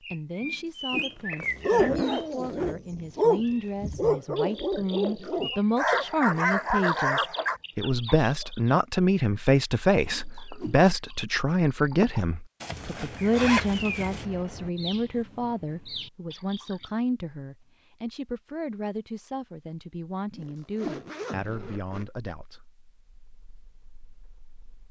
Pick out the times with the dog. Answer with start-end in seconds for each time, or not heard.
1.5-7.6.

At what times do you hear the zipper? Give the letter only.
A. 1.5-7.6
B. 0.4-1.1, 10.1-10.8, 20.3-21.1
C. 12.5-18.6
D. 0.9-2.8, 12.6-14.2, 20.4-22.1
D.